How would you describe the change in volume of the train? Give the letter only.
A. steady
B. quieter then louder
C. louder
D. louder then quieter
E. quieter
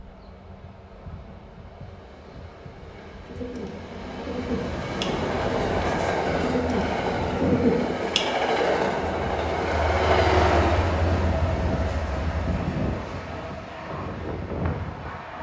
D.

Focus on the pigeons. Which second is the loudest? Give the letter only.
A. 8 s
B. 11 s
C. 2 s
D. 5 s
A.